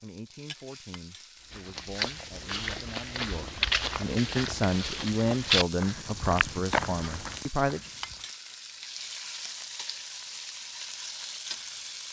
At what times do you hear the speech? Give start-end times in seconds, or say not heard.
0.0-7.9.